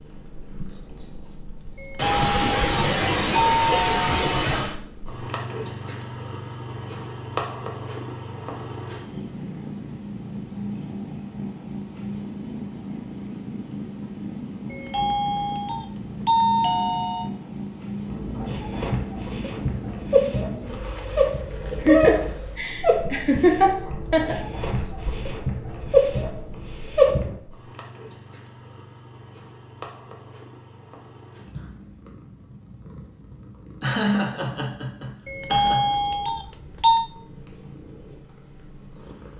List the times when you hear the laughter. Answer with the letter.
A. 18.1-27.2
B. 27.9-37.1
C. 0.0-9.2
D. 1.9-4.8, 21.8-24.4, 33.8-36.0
D.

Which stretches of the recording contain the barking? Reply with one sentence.
You can hear the barking from 18.1 to 27.2 s.